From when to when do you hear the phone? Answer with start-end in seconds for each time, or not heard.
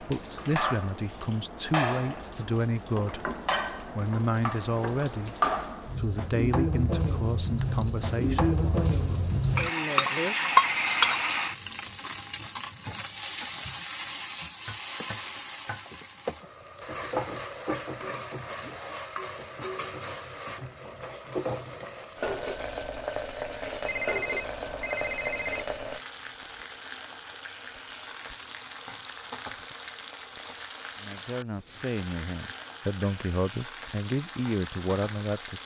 10.5-11.2, 23.9-25.6.